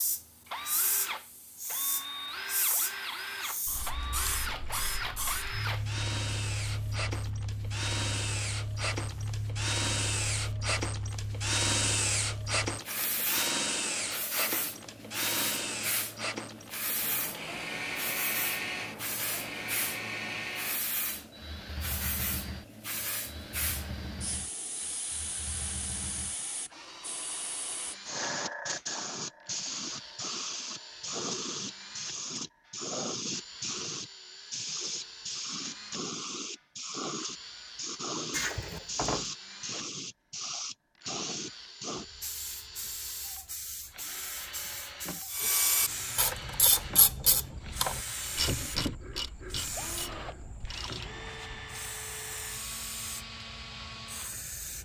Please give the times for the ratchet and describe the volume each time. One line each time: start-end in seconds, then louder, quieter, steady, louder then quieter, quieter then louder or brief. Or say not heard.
45.3-51.9 quieter.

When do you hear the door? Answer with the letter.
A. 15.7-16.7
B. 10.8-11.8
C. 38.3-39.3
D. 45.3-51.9
C.